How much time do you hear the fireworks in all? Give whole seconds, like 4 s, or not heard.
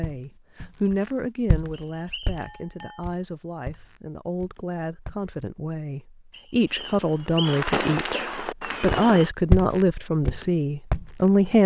3 s.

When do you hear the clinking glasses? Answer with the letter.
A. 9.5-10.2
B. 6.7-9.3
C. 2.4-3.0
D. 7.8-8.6
C.